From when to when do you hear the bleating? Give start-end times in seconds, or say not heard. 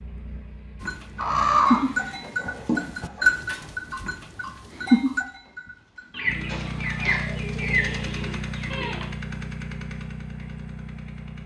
0.8-9.2.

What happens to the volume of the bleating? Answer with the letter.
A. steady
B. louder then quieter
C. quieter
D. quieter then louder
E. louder
C.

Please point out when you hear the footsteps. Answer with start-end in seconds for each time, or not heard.
not heard.